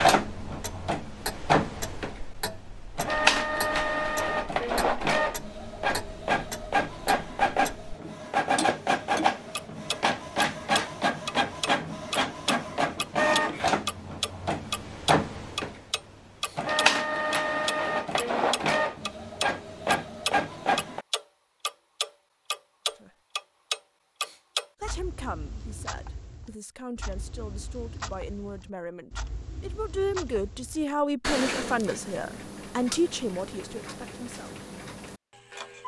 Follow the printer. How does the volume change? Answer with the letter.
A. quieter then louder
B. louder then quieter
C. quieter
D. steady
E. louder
D.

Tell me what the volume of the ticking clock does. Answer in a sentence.
The volume of the ticking clock goes up, then down.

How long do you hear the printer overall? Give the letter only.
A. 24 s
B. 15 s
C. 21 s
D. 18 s
C.